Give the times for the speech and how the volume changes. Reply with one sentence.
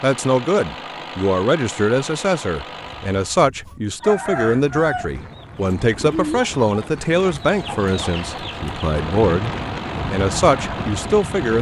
You can hear the speech from 0.0 to 11.5 s, at a steady volume.